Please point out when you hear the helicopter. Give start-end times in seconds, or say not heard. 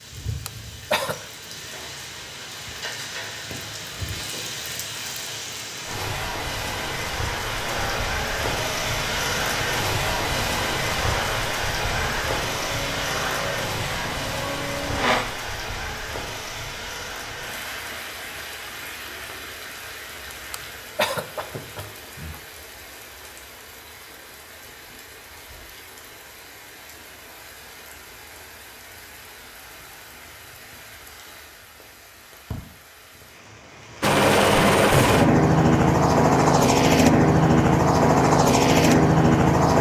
7.6-15.2, 34.0-39.7.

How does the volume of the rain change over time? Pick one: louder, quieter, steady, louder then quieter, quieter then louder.
louder then quieter.